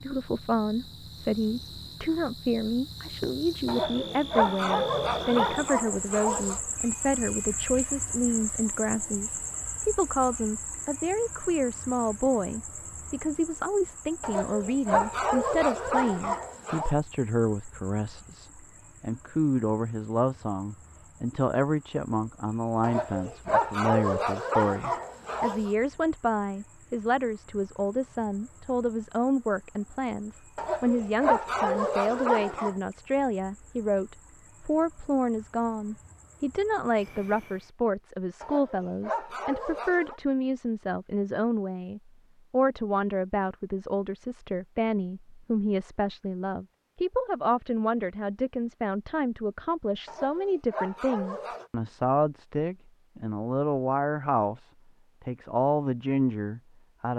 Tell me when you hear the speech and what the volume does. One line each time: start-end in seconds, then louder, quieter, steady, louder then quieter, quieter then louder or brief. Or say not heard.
0.0-57.1 steady.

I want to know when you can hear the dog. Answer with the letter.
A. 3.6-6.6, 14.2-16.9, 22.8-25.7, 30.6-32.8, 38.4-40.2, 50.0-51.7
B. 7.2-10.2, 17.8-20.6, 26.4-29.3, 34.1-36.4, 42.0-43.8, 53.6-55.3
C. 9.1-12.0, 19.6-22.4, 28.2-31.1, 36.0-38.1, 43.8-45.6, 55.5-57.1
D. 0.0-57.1
A.